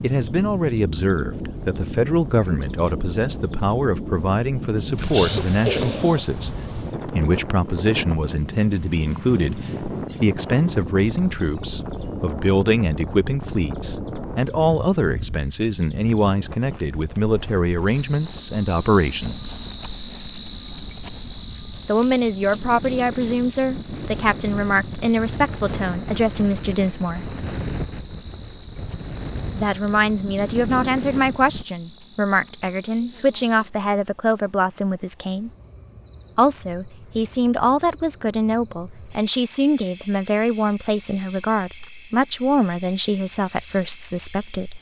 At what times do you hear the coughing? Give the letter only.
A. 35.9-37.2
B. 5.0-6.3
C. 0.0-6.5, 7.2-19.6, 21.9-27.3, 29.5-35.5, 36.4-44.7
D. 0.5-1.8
B.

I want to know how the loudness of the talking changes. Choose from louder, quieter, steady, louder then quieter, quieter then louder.
steady.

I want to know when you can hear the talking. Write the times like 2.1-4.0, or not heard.
0.0-6.5, 7.2-19.6, 21.9-27.3, 29.5-35.5, 36.4-44.7.